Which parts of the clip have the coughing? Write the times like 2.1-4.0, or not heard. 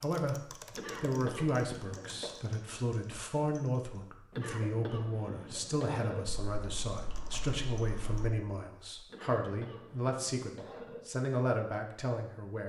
0.7-2.3, 4.3-6.2, 9.1-11.0.